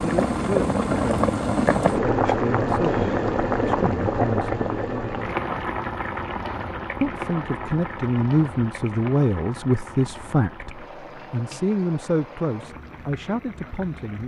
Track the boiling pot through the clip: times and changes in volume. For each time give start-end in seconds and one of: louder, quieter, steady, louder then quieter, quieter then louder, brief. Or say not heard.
0.0-14.2 quieter.